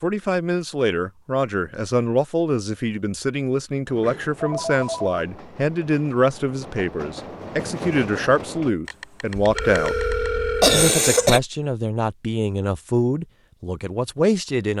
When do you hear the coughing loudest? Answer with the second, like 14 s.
11 s.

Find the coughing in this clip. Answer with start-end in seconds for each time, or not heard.
8.8-11.4.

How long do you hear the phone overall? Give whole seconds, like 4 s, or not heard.
3 s.